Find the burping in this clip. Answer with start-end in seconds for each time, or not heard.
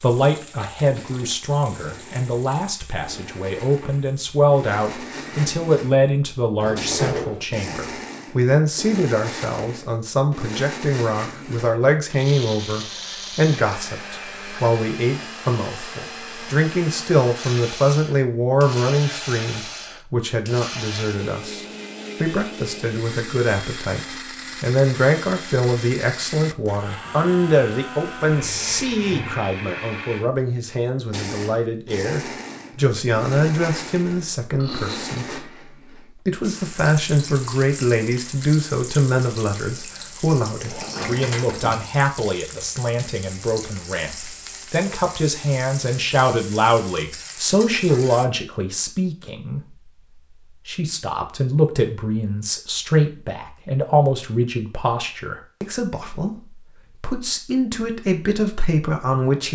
34.5-35.5.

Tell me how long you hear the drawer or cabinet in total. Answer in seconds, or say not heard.
3 s.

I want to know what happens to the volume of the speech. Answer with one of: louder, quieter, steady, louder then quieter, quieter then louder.
steady.